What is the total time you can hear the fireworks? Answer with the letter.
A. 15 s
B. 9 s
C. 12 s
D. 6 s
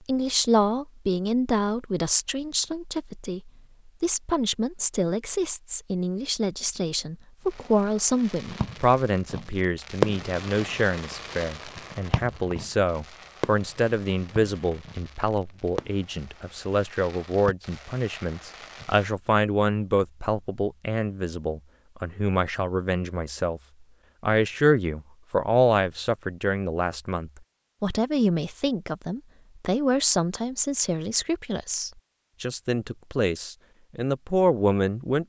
C.